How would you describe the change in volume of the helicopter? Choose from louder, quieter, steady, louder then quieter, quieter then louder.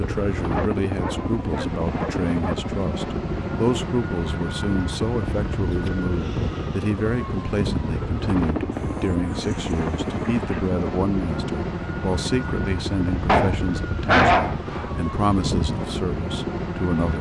steady.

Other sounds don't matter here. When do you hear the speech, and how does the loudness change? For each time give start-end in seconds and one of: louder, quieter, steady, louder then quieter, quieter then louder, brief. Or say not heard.
0.0-17.1 steady.